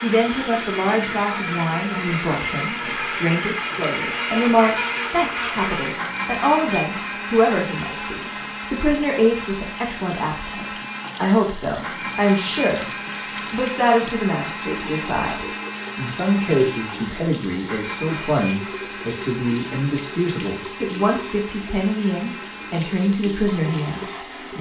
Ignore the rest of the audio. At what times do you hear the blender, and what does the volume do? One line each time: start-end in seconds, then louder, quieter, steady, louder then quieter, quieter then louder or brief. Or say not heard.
0.0-24.5 quieter.